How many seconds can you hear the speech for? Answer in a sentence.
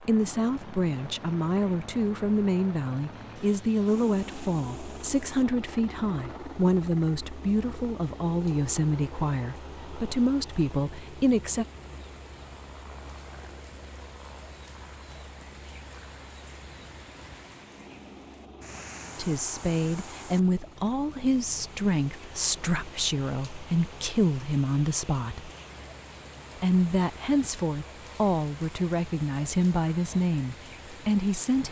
The speech can be heard for 23 seconds in total.